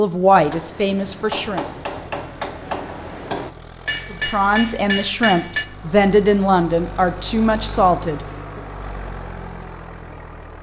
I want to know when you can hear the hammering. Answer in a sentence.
The hammering can be heard from 0.4 to 5.7 s.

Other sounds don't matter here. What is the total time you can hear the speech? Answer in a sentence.
The speech can be heard for 6 seconds in total.